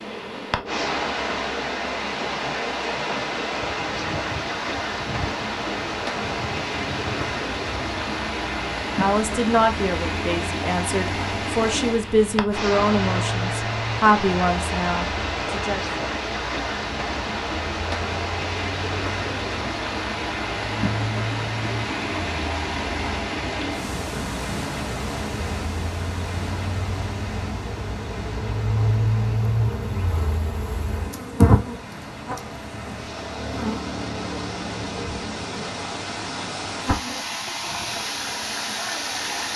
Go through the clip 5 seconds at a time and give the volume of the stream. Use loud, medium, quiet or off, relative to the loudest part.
loud, loud, loud, loud, loud, medium, medium, loud.